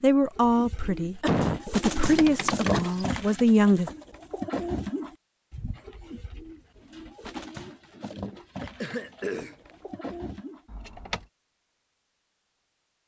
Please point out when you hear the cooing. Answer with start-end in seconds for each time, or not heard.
0.3-10.7.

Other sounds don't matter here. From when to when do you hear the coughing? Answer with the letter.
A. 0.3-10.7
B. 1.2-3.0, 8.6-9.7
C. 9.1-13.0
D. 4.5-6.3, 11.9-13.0
B.